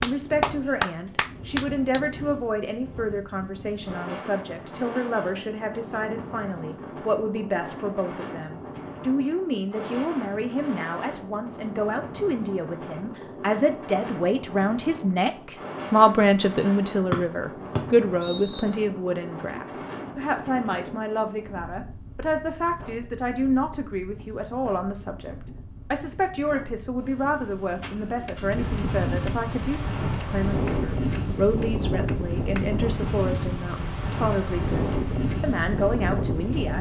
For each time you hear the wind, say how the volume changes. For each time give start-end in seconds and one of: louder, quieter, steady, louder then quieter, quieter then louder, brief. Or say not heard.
0.0-36.7 louder.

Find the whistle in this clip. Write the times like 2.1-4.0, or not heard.
17.1-18.6.